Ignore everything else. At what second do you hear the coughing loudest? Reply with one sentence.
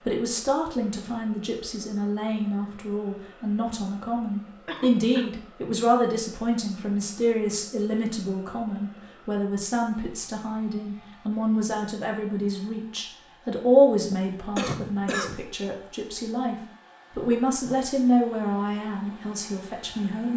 The volume of the coughing peaks at 15 seconds.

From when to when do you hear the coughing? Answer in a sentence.
You can hear the coughing from 4.7 to 5.3 s and from 14.1 to 15.4 s.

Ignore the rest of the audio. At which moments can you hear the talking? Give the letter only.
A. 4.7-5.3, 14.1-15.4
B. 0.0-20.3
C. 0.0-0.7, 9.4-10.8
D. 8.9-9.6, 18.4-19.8
B.